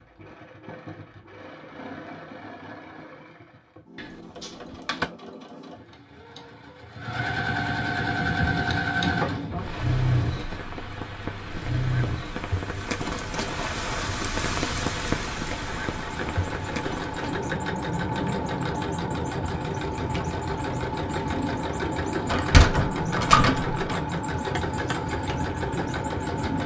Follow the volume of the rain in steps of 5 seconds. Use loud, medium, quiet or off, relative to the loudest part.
off, loud, loud, loud, loud, loud.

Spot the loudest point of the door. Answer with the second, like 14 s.
23 s.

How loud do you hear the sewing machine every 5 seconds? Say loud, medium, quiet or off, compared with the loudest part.
quiet, loud, loud, loud, loud, loud.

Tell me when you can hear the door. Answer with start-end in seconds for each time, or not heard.
4.0-5.0, 22.2-23.9.